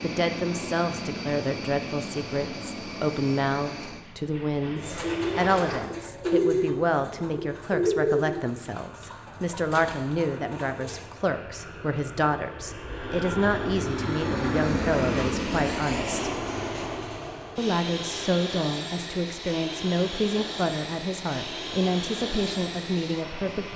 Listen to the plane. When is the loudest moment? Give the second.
15 s.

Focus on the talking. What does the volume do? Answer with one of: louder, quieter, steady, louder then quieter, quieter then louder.
steady.